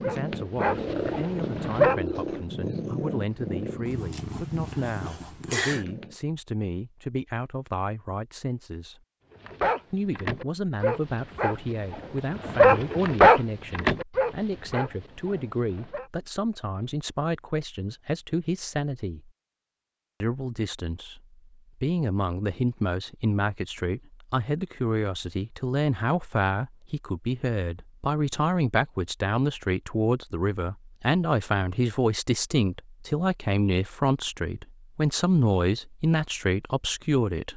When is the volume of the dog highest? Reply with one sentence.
The volume of the dog peaks at 13 seconds.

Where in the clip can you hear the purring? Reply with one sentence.
The purring can be heard from 0.0 to 6.2 s.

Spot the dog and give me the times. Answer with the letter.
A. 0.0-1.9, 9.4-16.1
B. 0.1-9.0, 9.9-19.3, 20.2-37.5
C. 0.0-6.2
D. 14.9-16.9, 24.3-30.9
A.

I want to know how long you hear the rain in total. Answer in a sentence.
You can't hear the rain here.